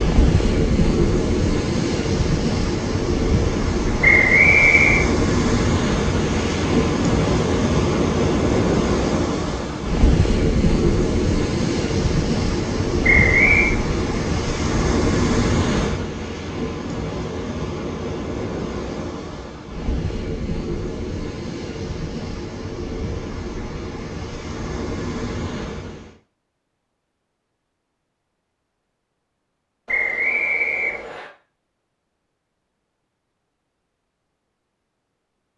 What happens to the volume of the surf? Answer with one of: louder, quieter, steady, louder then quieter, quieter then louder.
quieter.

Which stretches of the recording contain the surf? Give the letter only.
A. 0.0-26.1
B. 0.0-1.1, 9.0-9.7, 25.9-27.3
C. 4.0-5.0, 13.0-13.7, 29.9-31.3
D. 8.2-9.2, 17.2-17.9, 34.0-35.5
A.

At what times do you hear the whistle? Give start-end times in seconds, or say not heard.
4.0-5.0, 13.0-13.7, 29.9-31.3.